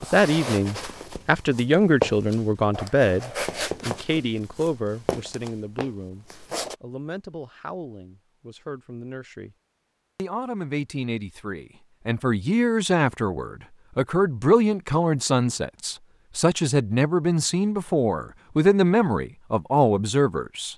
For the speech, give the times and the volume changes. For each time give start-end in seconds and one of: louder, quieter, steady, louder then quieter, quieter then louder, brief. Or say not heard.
0.0-9.6 quieter
10.2-20.7 louder.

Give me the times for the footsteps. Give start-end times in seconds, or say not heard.
0.0-6.8.